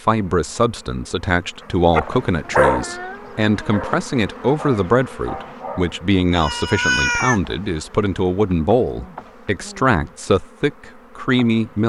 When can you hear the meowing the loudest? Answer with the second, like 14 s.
7 s.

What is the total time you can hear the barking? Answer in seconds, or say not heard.
3 s.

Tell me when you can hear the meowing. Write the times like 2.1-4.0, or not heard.
2.4-3.9, 6.3-7.4.